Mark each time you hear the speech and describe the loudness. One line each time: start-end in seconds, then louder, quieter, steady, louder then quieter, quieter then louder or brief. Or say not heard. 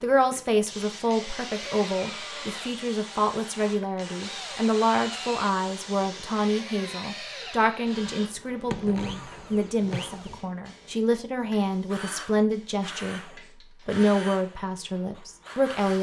0.0-15.9 steady.